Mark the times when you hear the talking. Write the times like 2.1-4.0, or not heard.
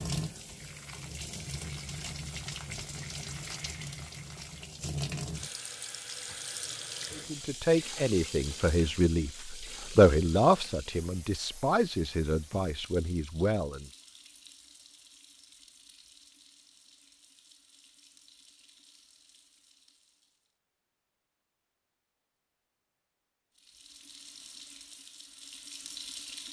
7.1-13.9.